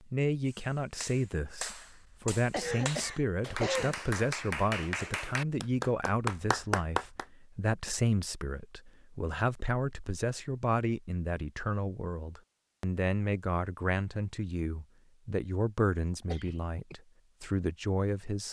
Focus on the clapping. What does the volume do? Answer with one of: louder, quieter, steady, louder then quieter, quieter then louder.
louder.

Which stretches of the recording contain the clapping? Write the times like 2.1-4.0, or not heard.
0.5-7.2.